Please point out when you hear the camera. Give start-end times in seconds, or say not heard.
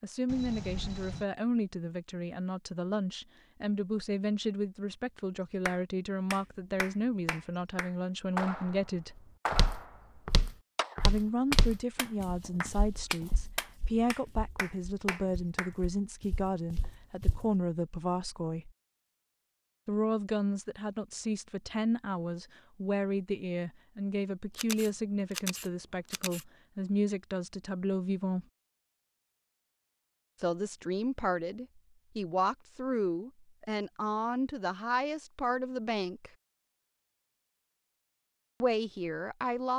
0.2-1.2, 24.6-26.4.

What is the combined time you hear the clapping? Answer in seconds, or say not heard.
10 s.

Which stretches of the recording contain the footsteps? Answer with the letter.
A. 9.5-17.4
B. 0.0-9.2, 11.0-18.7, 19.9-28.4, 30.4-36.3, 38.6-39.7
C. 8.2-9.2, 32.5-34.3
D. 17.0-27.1
A.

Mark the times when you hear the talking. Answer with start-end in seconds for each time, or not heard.
0.0-9.2, 11.0-18.7, 19.9-28.4, 30.4-36.3, 38.6-39.7.